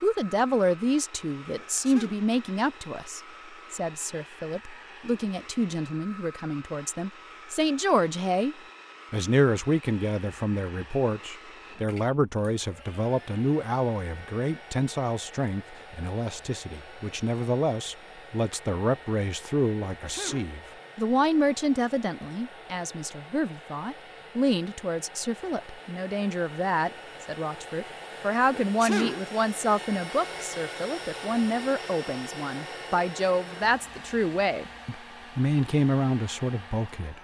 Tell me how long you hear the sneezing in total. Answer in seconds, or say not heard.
2 s.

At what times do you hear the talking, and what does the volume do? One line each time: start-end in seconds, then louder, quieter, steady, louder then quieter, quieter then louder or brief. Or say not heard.
0.0-37.2 steady.